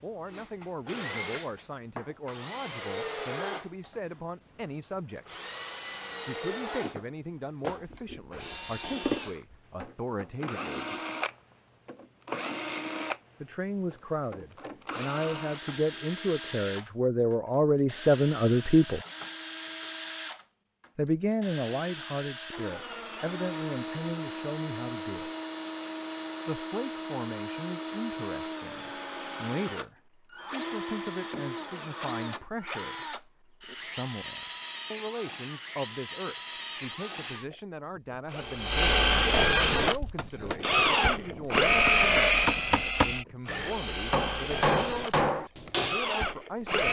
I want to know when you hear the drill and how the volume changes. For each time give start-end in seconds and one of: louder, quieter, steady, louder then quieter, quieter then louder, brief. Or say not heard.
0.0-46.8 louder.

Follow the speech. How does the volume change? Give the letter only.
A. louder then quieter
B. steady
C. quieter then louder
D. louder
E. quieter
A.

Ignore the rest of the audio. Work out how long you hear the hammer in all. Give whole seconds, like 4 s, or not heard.
6 s.